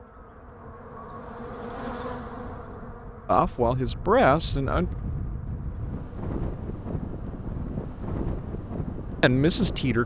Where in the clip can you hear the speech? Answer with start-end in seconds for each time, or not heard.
3.2-4.9, 9.2-10.0.